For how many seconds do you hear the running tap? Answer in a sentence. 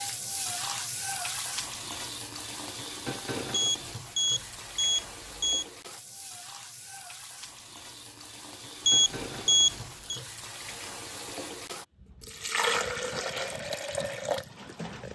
The running tap can be heard for 15 seconds in total.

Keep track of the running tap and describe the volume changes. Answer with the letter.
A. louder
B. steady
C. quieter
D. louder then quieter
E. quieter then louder
E.